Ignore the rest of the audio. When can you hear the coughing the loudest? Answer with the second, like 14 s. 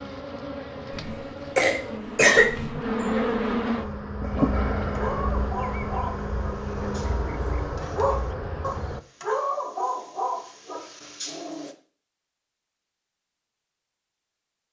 2 s.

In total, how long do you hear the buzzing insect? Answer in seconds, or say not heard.
9 s.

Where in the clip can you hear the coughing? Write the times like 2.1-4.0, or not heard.
0.9-2.9.